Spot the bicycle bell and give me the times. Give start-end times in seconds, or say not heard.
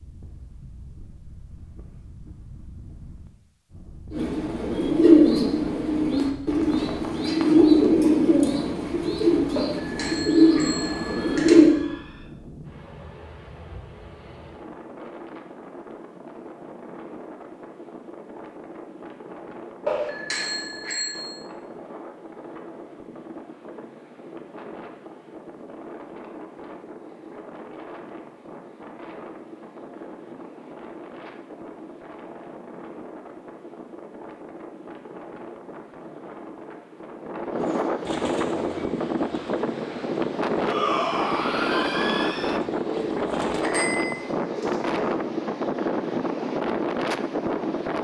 9.6-11.6, 19.9-21.2, 43.6-44.2.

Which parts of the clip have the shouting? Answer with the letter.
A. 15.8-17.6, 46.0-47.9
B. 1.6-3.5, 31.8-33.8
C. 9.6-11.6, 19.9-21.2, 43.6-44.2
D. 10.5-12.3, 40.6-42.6
D.